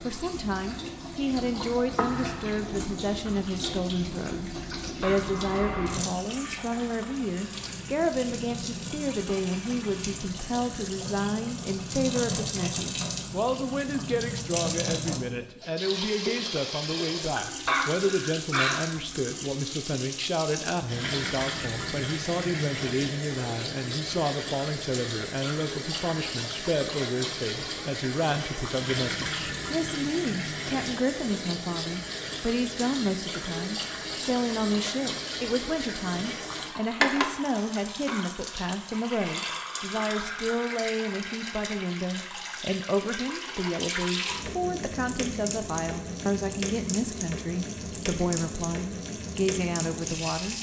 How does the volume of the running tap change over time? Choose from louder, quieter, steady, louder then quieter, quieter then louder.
steady.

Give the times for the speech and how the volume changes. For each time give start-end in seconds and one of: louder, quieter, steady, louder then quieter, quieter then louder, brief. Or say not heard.
0.0-50.5 steady.